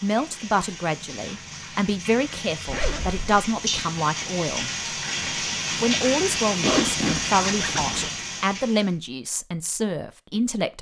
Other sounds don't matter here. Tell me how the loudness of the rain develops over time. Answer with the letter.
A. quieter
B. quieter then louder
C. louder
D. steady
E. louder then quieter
C.